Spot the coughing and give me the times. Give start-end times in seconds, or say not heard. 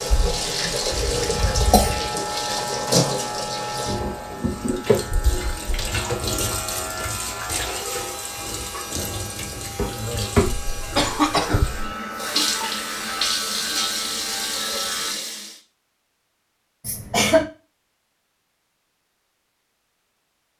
1.0-2.1, 10.4-11.9, 16.9-17.5.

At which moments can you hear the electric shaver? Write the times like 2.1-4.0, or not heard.
0.0-15.2.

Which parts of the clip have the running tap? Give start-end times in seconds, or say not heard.
0.0-15.6.